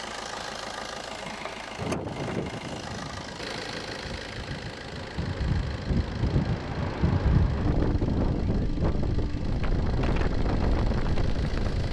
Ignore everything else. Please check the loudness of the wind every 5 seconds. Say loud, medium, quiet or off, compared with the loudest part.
medium, loud, loud.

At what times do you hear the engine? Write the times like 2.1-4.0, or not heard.
0.0-11.8.